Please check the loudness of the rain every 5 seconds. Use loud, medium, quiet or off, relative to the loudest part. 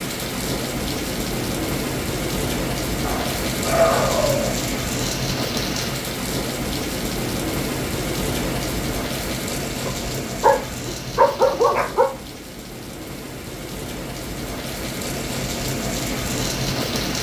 loud, loud, medium, loud.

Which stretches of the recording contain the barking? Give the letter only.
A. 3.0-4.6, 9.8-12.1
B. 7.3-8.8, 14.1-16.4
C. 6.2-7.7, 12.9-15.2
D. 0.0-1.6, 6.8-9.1
A.